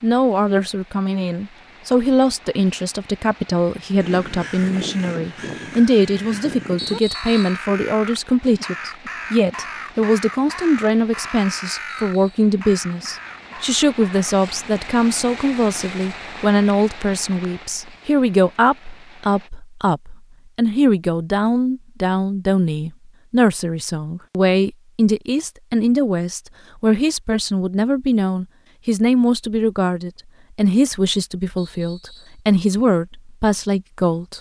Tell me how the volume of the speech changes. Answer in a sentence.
The loudness of the speech stays about the same.